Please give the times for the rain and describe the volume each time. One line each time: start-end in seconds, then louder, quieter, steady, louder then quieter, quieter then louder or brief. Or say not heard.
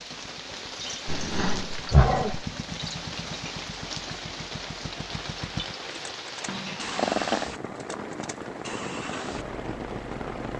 0.0-10.5 steady.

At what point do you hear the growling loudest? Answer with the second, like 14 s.
2 s.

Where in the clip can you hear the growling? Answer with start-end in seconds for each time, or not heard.
1.1-2.5, 6.5-7.5.